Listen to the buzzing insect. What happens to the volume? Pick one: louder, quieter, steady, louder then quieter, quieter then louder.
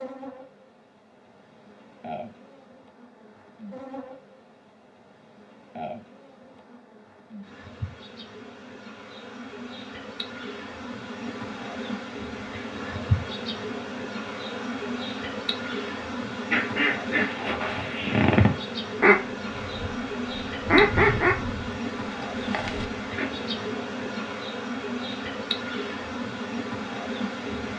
louder.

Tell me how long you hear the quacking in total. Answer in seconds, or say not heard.
7 s.